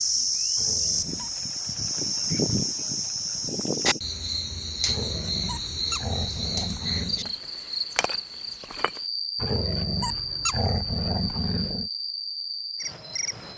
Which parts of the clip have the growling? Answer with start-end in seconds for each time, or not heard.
0.6-1.4, 4.8-7.3, 9.3-11.9.